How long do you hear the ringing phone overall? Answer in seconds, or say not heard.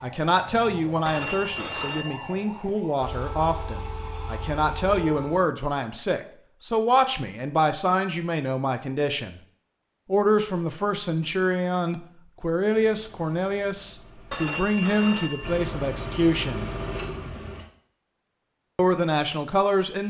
3 s.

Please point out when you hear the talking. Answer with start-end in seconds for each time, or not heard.
0.0-9.4, 10.1-16.6, 18.8-20.0.